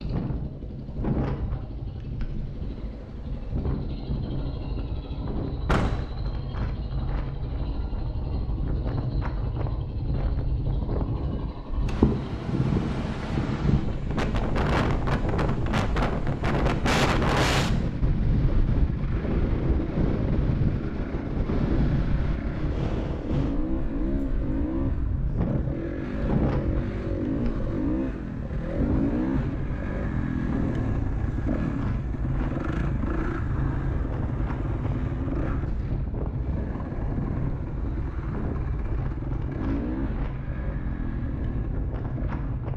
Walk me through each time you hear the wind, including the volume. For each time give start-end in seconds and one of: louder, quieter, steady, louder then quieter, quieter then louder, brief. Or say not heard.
0.0-42.7 louder then quieter.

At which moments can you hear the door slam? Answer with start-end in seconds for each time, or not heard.
5.7-6.2.